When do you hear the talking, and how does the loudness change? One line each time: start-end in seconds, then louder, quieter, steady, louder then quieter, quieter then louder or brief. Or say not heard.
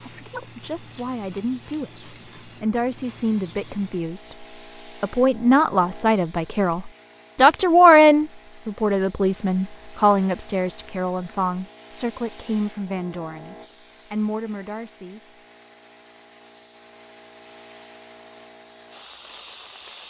0.0-15.2 louder then quieter.